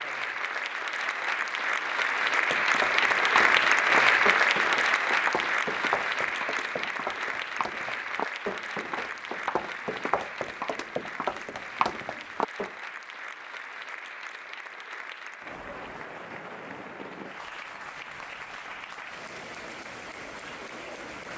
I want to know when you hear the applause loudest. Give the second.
4 s.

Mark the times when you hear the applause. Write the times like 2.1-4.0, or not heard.
0.0-21.3.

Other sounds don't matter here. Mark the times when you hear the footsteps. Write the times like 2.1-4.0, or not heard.
2.3-12.7.